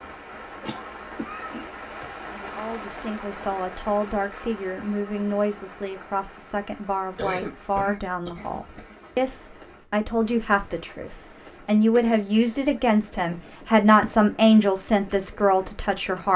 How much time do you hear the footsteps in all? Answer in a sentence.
You can't hear the footsteps here.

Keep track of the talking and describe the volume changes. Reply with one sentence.
The loudness of the talking goes up.